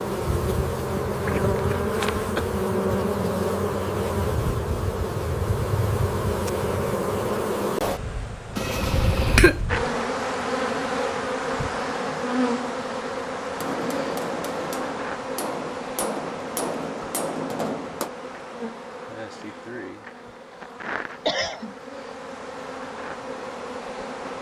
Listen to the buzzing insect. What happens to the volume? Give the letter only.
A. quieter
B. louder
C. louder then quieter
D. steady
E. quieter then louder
A.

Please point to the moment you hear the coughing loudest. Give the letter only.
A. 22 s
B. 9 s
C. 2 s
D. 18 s
B.